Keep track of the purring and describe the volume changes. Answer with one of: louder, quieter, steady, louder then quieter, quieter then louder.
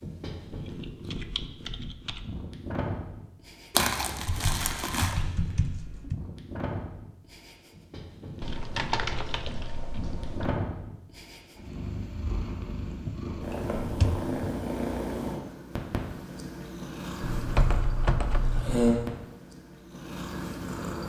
louder.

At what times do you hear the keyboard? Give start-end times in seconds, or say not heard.
0.8-2.2, 4.2-6.2, 8.4-10.6, 12.8-14.3, 17.2-19.1.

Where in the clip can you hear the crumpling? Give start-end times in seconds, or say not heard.
3.7-5.2.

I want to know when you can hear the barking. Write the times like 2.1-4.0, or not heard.
not heard.